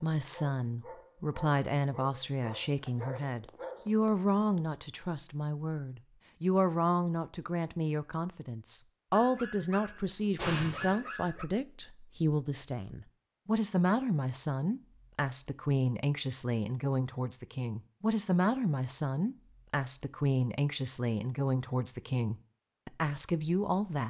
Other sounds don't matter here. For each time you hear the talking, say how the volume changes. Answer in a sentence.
You can hear the talking from 0.0 to 24.0 s, at a steady volume.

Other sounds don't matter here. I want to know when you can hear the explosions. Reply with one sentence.
You can hear the explosions from 10.3 to 10.9 s.